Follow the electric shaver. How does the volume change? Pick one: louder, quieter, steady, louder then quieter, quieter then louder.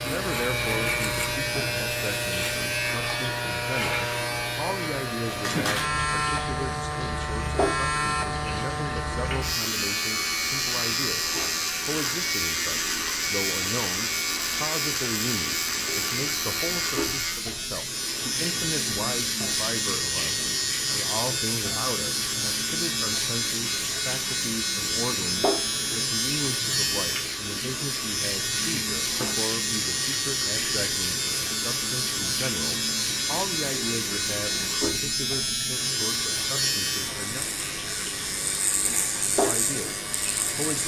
steady.